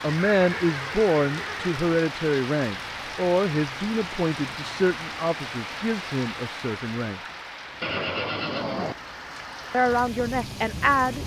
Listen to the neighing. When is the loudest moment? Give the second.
8 s.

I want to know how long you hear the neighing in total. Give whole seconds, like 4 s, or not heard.
3 s.